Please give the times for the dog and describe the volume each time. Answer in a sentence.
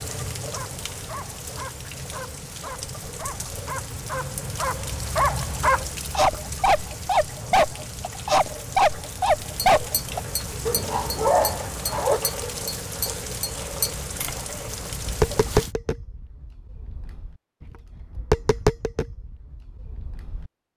The dog can be heard from 0.3 to 12.2 s, getting louder.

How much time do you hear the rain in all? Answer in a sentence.
You can hear the rain for 16 seconds altogether.